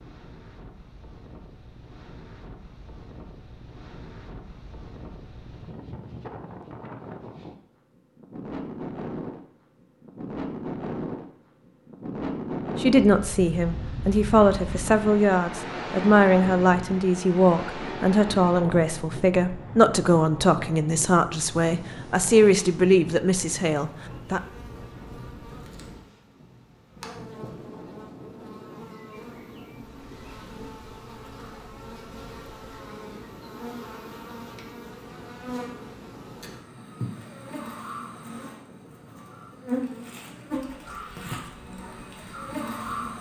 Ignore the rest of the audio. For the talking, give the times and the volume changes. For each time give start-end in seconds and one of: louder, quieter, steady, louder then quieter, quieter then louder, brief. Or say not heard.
12.8-24.4 steady.